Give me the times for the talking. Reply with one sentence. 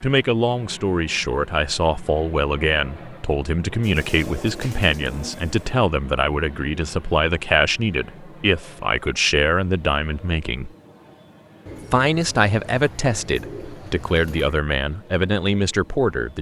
You can hear the talking from 0.0 to 10.7 s and from 11.9 to 16.3 s.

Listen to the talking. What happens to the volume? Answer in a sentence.
The loudness of the talking stays about the same.